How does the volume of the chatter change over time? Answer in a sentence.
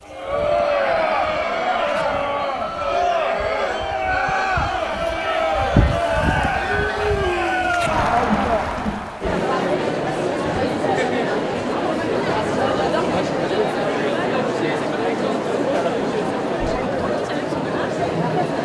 The loudness of the chatter stays about the same.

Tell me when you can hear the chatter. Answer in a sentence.
The chatter can be heard from 0.0 to 18.6 s.